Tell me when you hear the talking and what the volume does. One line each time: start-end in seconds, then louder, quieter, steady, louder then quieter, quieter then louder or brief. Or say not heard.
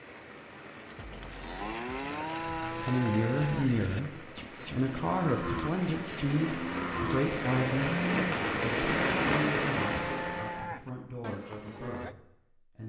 2.8-12.8 quieter.